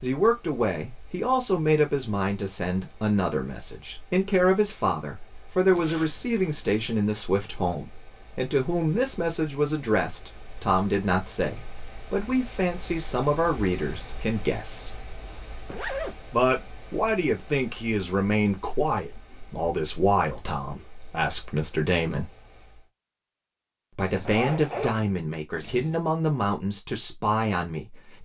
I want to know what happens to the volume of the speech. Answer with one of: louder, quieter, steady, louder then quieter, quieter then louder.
steady.